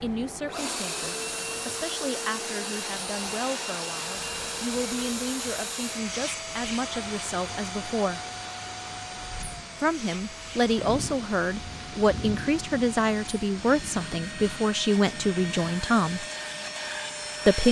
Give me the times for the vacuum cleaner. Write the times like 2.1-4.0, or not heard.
0.0-17.6.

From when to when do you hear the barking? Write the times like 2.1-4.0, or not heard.
not heard.